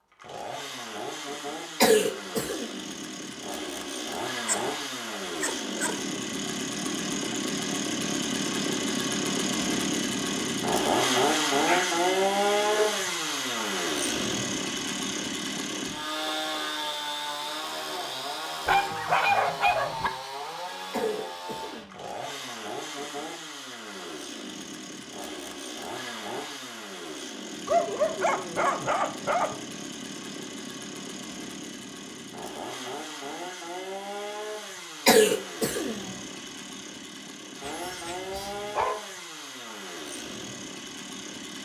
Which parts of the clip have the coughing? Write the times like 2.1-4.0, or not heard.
1.8-2.7, 20.9-22.1, 35.0-36.2.